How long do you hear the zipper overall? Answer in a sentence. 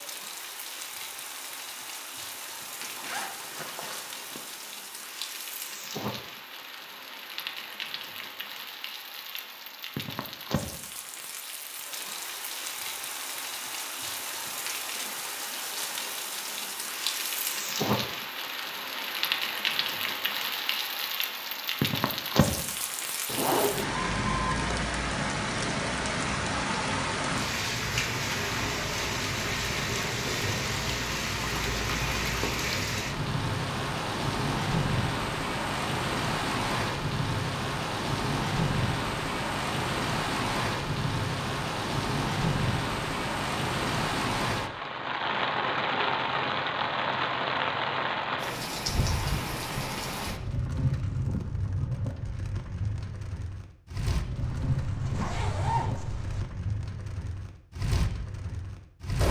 The zipper can be heard for 5 seconds in total.